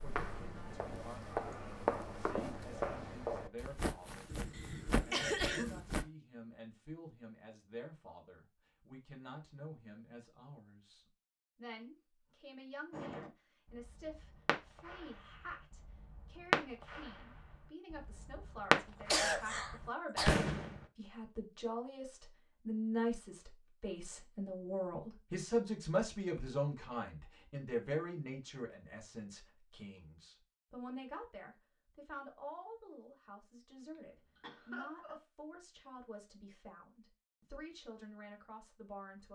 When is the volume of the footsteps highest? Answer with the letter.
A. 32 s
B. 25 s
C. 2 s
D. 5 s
C.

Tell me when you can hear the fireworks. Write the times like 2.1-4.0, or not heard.
12.9-20.8.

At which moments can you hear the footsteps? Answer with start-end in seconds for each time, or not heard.
0.0-6.0.